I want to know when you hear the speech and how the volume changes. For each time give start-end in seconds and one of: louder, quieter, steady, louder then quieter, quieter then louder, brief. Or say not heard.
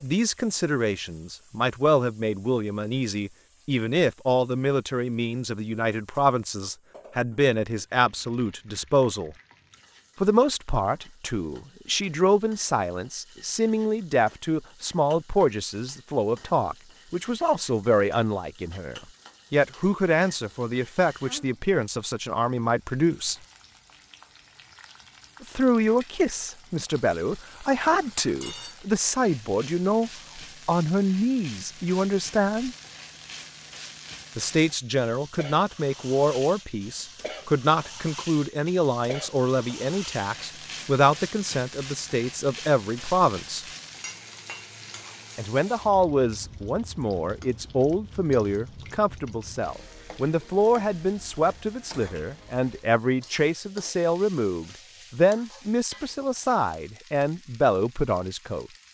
0.0-9.3 steady
10.2-23.4 steady
25.4-32.8 steady
34.4-43.6 steady
45.4-58.7 steady.